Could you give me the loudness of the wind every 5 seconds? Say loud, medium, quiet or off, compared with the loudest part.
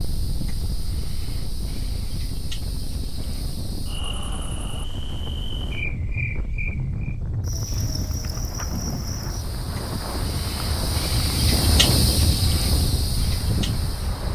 medium, loud, loud.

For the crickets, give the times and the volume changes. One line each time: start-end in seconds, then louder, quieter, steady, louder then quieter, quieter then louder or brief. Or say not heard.
0.0-14.3 louder.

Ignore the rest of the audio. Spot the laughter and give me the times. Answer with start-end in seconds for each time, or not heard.
not heard.